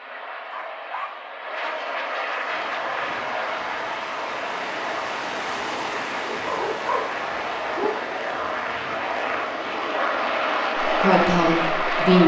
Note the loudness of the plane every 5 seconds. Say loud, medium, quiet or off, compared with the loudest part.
medium, medium, loud.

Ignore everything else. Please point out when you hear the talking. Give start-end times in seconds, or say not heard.
10.8-12.2.